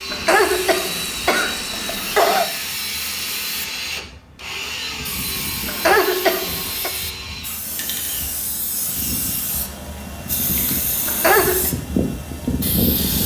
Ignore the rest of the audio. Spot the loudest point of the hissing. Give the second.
12 s.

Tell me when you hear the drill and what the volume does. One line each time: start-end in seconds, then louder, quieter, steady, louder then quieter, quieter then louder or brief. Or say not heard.
0.0-13.2 quieter.